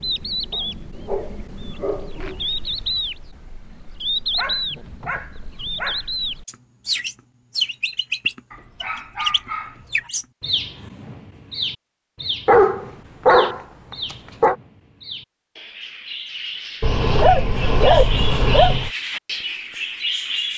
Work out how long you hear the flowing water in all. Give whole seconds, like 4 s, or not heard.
not heard.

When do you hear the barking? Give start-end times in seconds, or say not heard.
0.5-2.5, 4.3-6.0, 8.5-10.1, 12.4-14.6, 16.8-18.9.